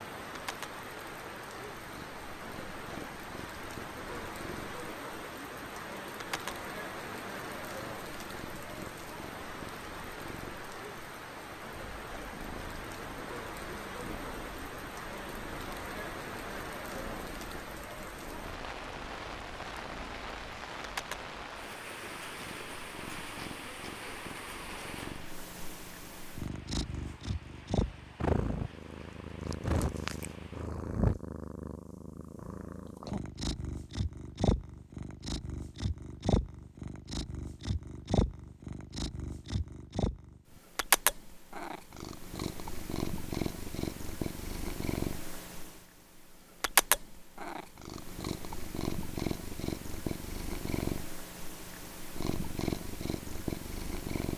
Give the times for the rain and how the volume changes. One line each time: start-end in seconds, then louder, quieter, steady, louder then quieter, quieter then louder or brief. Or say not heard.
0.0-30.7 quieter.